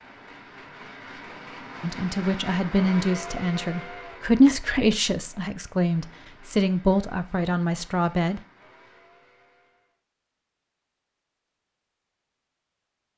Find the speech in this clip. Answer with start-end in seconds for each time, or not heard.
1.8-8.4.